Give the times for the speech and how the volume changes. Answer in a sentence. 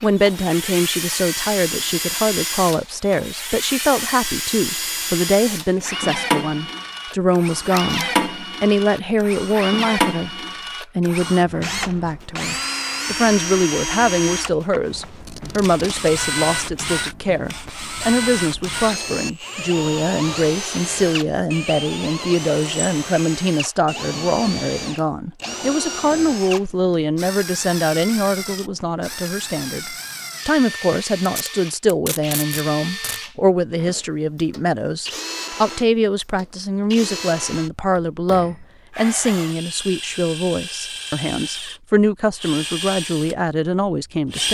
The speech can be heard from 0.0 to 44.5 s, at a steady volume.